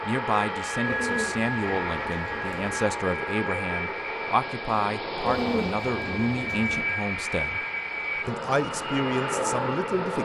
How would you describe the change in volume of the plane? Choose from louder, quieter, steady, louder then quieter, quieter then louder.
quieter then louder.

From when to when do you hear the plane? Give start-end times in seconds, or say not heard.
0.0-10.1.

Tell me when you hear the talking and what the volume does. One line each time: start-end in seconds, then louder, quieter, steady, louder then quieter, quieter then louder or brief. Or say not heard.
0.0-7.6 steady
8.2-10.1 brief.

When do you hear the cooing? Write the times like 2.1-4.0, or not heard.
0.8-2.6, 5.2-6.8.